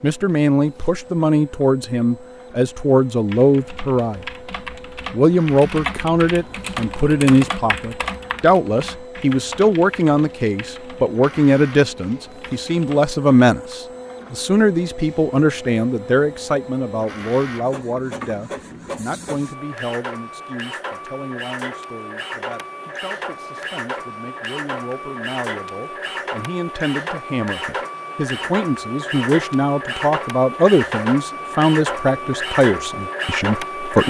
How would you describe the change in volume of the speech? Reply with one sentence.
The volume of the speech goes down, then up.